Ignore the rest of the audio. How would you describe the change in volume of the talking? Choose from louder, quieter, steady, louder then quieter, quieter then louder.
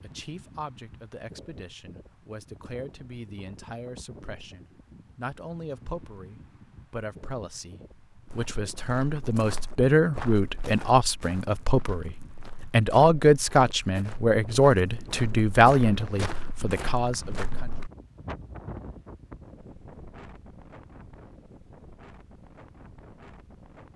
louder.